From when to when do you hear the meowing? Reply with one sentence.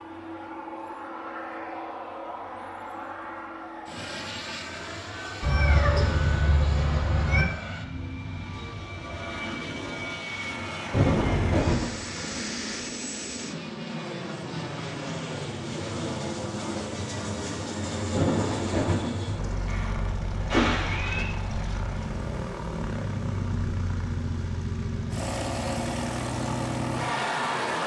You can hear the meowing from 5.4 to 7.5 s, from 10.9 to 11.8 s and from 19.6 to 21.2 s.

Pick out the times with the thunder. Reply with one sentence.
The thunder can be heard from 10.9 to 12.4 s and from 18.1 to 19.6 s.